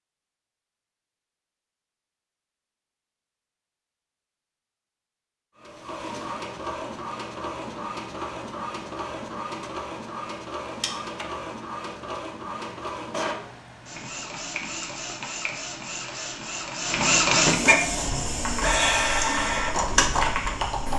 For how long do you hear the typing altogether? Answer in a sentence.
The typing can be heard for 3 seconds in total.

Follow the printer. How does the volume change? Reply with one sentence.
The loudness of the printer goes up.